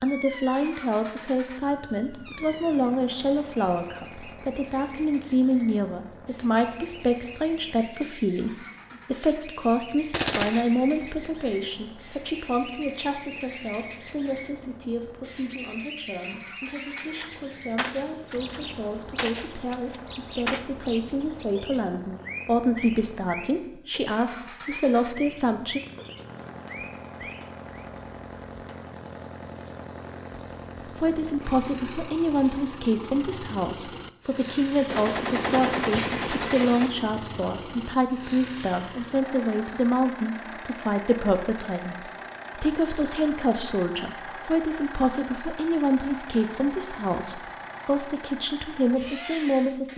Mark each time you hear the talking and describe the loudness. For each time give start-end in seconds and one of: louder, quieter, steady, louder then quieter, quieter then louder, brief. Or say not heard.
0.0-25.8 quieter then louder
30.9-49.9 steady.